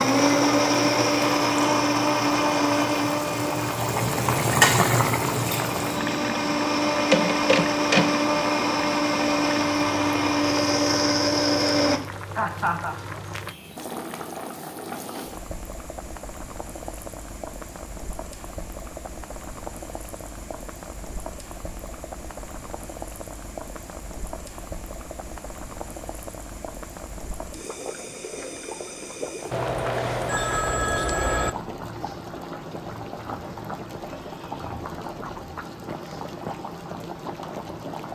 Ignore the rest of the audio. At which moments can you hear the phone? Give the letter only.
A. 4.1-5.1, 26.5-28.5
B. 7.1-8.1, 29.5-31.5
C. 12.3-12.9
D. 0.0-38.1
B.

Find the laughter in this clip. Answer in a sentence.
You can hear the laughter from 12.3 to 12.9 s.